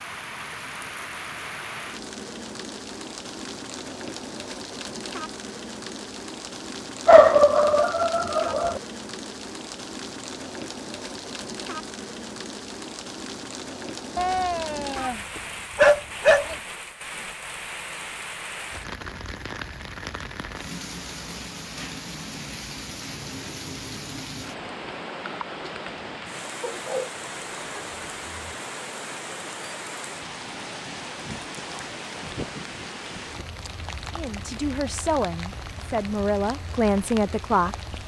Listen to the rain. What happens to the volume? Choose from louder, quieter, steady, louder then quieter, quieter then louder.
steady.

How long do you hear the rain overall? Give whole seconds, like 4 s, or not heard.
38 s.